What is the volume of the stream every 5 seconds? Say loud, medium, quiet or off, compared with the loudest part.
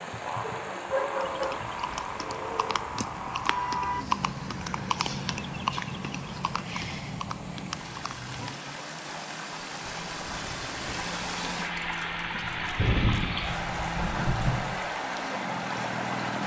medium, medium, loud, loud.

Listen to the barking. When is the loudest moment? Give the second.
1 s.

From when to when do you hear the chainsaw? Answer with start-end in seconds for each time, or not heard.
0.1-16.4.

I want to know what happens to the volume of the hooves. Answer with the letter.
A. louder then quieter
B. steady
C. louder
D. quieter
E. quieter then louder
A.